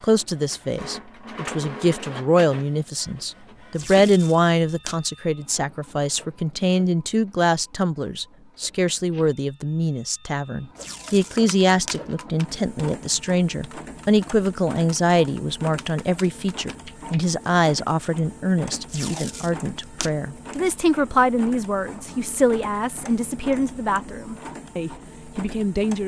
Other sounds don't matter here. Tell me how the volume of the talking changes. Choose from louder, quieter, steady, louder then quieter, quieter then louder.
steady.